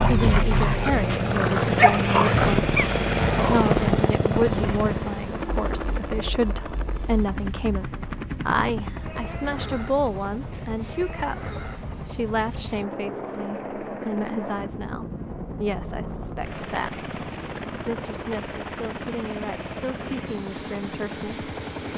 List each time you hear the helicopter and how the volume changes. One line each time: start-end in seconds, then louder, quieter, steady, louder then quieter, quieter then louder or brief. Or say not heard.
0.0-21.9 quieter.